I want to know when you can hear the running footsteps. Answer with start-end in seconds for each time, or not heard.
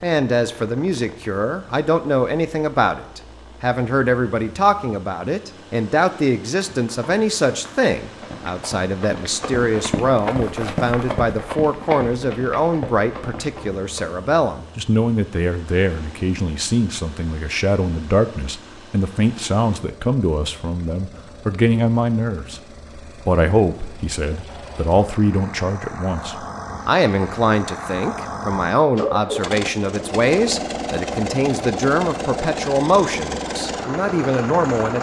6.5-14.2.